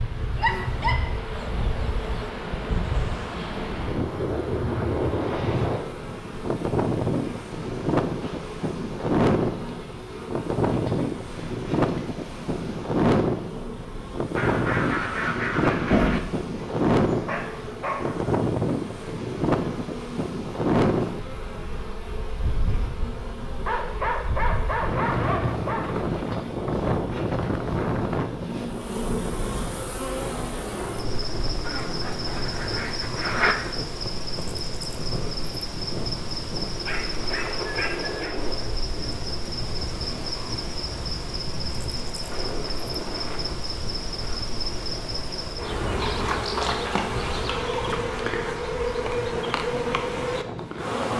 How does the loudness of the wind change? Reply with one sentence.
The loudness of the wind goes down.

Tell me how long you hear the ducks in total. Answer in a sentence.
You can hear the ducks for 4 seconds altogether.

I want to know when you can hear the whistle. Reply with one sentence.
You can't hear the whistle here.